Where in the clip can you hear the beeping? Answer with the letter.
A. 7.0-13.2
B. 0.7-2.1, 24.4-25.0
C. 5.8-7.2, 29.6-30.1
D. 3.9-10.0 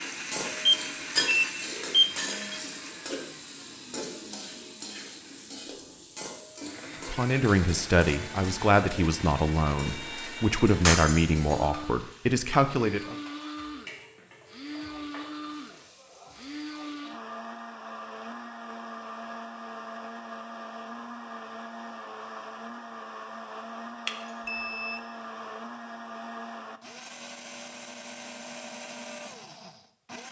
B.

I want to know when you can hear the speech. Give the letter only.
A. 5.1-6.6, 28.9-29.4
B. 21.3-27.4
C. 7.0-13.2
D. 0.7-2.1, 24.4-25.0
C.